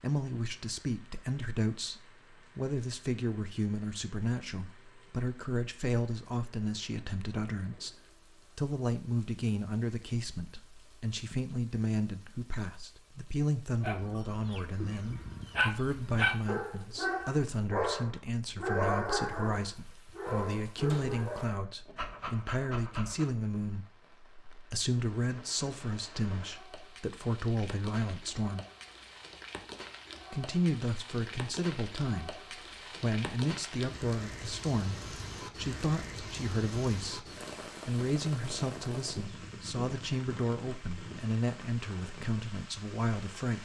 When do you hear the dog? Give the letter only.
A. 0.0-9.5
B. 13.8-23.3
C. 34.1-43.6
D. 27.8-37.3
B.